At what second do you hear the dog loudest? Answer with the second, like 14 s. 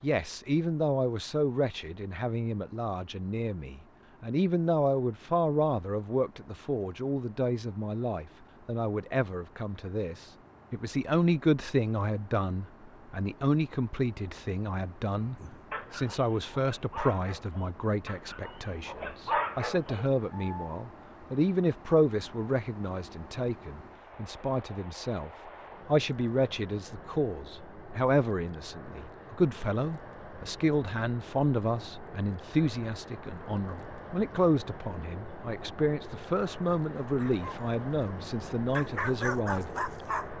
19 s.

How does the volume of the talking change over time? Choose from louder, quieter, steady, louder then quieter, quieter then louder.
steady.